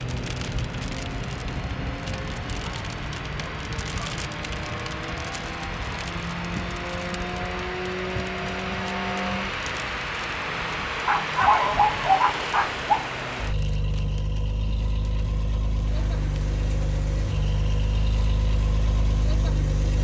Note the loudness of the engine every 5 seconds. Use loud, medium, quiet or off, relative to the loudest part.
medium, loud, loud, loud.